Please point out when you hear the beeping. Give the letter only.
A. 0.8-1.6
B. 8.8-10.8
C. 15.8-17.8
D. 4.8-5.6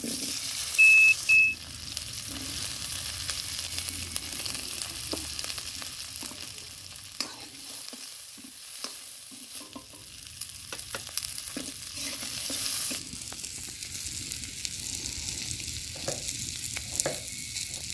A.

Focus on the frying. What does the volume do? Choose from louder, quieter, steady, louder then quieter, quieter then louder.
quieter then louder.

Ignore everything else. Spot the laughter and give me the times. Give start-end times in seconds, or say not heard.
not heard.